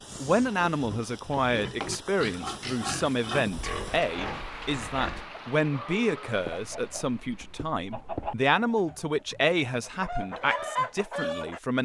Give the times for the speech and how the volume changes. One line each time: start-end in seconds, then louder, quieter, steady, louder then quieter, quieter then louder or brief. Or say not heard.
0.1-11.7 steady.